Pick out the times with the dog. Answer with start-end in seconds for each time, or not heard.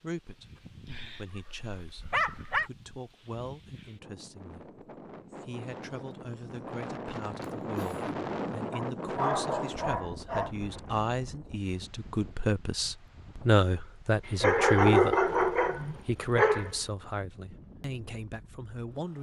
1.1-2.7, 8.7-10.5, 14.4-16.7.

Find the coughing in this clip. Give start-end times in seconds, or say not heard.
7.4-8.2.